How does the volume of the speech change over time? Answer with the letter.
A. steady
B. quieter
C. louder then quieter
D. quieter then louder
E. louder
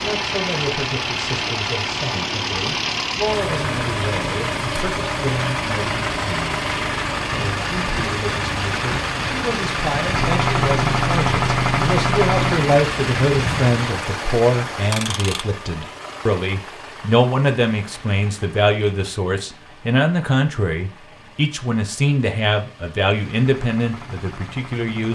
E.